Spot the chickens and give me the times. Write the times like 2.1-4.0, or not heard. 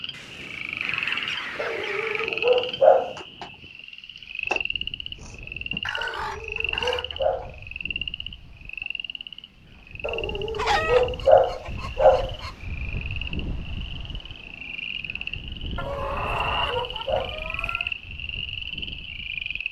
0.1-2.3, 5.8-7.5, 10.6-12.6, 15.8-17.9.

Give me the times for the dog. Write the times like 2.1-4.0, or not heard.
1.6-3.1, 6.0-7.5, 10.0-12.3, 15.8-17.4.